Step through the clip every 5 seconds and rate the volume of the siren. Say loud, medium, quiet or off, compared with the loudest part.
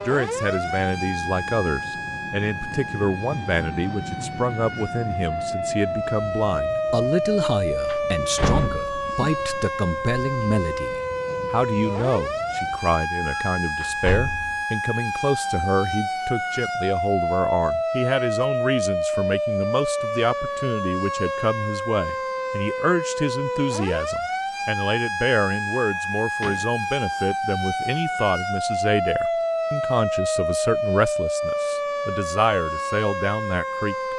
medium, loud, loud, loud, loud, loud, loud.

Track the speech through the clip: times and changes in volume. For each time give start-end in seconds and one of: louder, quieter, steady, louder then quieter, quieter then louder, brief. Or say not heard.
0.1-34.1 steady.